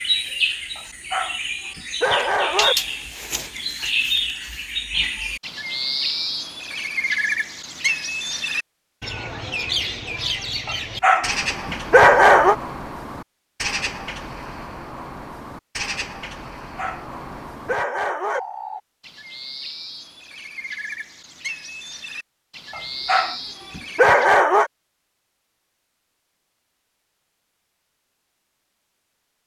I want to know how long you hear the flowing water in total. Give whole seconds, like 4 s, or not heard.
not heard.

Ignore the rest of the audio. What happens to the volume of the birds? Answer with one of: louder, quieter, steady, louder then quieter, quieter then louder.
quieter.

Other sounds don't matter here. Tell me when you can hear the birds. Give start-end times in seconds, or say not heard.
0.0-24.4.